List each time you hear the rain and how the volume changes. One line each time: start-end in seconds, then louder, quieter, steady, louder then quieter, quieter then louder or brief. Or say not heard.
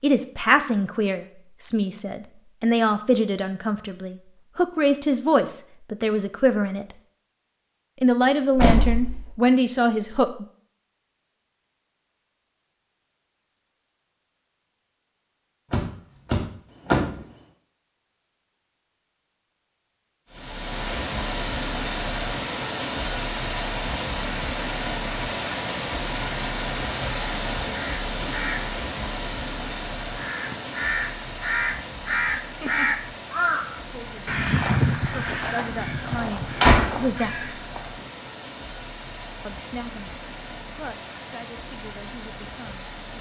20.3-43.1 quieter.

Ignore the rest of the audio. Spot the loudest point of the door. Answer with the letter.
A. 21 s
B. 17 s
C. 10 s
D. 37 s
D.